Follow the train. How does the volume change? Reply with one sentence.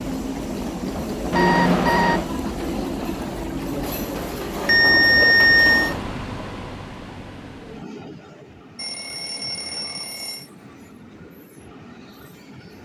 The volume of the train goes down.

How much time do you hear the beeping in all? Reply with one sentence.
You can hear the beeping for 4 seconds altogether.